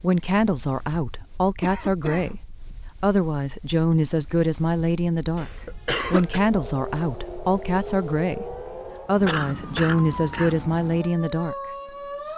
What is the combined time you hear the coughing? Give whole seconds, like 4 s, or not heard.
3 s.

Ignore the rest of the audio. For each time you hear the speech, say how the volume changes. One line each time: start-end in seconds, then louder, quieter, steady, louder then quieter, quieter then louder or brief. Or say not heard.
0.0-11.6 steady.